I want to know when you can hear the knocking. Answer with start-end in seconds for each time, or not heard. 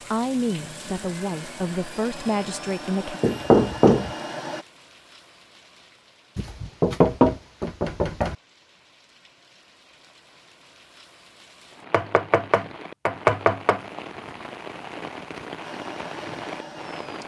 3.2-4.1, 6.3-8.3, 11.9-13.8.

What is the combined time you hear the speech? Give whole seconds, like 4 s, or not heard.
3 s.